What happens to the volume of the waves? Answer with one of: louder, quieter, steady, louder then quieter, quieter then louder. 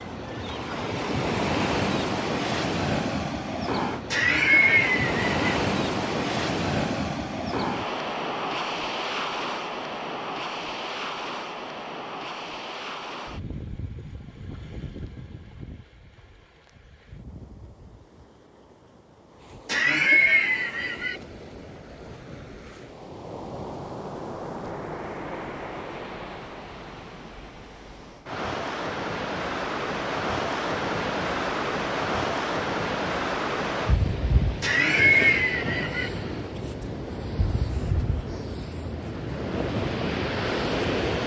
quieter then louder.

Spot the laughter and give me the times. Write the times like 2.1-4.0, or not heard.
4.1-5.6, 19.6-21.2, 34.6-36.1.